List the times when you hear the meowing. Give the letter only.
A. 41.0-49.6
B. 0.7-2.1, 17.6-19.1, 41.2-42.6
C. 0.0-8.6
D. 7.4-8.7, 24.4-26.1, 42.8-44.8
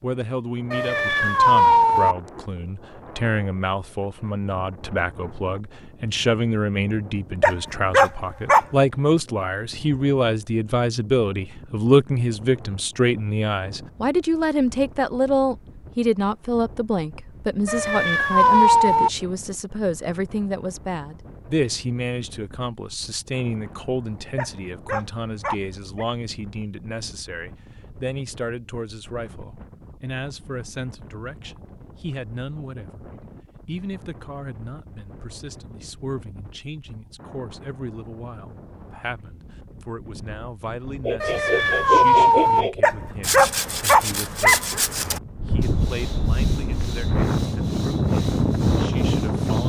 B.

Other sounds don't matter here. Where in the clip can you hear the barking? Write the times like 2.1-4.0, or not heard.
7.4-8.7, 24.4-26.1, 42.8-44.8.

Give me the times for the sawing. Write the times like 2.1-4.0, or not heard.
41.0-49.6.